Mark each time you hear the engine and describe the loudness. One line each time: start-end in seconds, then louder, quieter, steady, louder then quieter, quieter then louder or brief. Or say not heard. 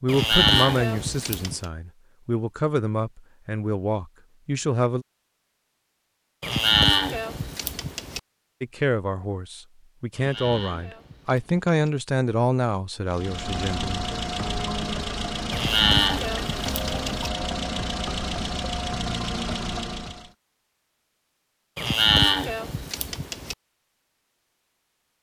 13.1-20.3 steady.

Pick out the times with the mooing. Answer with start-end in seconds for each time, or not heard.
0.1-1.6, 6.4-8.2, 10.1-11.8, 15.5-17.3, 21.8-23.6.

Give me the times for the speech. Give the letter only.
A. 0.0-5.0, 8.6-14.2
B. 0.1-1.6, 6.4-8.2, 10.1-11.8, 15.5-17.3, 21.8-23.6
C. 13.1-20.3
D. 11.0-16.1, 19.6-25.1
A.